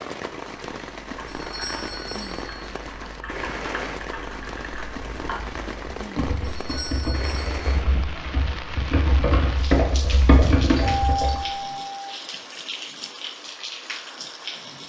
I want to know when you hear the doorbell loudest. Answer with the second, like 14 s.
11 s.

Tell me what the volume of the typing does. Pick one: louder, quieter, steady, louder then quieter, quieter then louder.
louder.